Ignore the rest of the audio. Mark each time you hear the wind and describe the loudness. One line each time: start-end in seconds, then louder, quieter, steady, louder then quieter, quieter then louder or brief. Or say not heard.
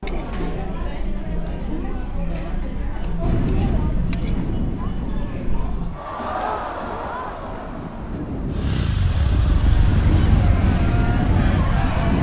3.2-12.1 quieter then louder.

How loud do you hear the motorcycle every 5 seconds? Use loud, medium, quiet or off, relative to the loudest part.
off, loud, loud.